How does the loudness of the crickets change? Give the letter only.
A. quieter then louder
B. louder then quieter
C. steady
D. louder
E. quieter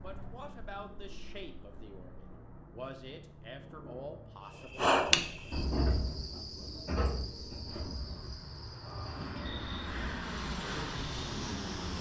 E.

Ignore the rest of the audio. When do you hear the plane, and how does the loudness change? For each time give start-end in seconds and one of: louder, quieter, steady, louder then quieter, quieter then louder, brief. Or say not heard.
0.0-11.9 louder.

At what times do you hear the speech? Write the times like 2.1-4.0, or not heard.
0.0-4.9.